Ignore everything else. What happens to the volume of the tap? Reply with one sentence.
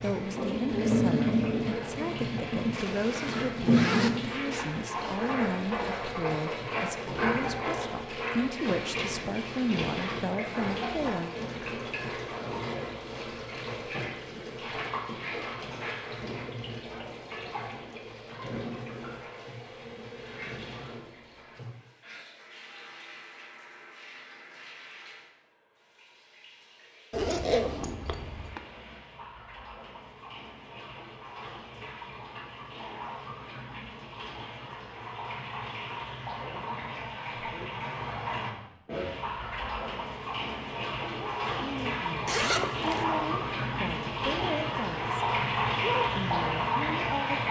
The volume of the tap goes down, then up.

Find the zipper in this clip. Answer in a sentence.
The zipper can be heard from 2.7 to 5.2 s, from 27.1 to 28.6 s and from 42.2 to 43.1 s.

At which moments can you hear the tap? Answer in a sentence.
You can hear the tap from 0.0 to 47.4 s.